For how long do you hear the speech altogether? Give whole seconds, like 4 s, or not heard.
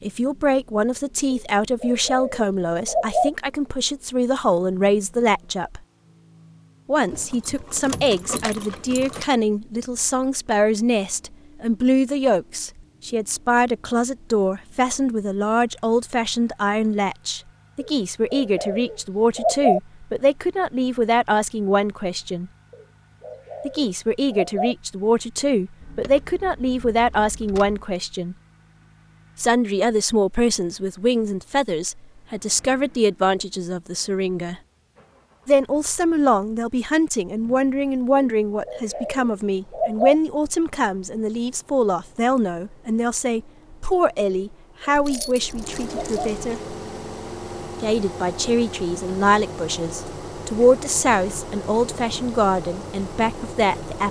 49 s.